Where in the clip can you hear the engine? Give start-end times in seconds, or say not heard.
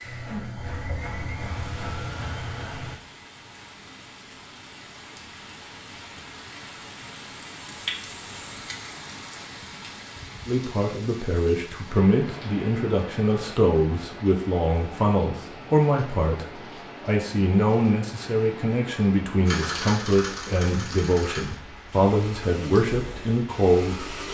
0.0-3.0, 19.4-24.2.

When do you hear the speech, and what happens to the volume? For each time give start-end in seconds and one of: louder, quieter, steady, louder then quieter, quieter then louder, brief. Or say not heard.
10.4-24.1 steady.